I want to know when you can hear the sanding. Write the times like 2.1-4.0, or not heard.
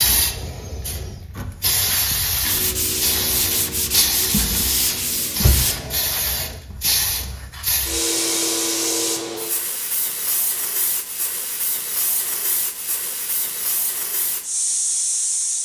2.4-5.8.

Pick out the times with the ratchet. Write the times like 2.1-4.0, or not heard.
not heard.